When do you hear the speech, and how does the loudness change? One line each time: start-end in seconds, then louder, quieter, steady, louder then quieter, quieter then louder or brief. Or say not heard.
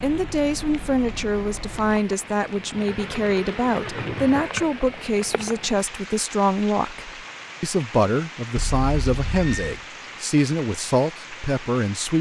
0.0-12.1 steady.